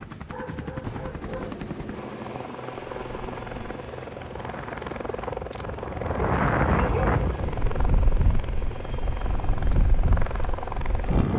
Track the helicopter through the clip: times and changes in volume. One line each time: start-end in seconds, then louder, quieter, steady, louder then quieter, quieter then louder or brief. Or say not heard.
0.0-11.3 steady.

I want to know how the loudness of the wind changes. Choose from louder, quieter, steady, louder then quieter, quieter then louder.
louder then quieter.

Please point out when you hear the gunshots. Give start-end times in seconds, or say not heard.
1.2-2.7.